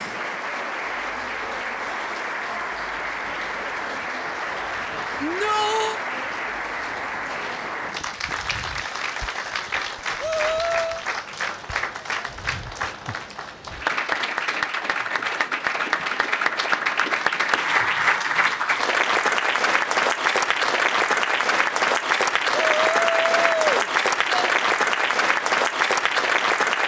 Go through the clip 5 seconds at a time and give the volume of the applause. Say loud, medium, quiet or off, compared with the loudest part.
medium, medium, medium, loud, loud, loud.